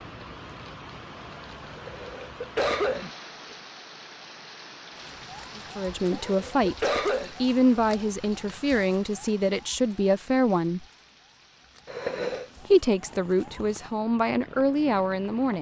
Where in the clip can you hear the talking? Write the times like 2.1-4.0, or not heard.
5.5-10.8, 12.7-15.5.